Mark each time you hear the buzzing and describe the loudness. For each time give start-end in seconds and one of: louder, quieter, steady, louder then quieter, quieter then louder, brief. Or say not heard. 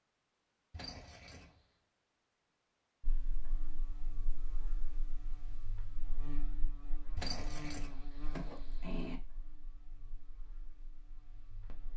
3.0-11.9 louder then quieter.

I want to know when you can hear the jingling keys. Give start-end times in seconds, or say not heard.
0.7-1.5, 7.2-9.2.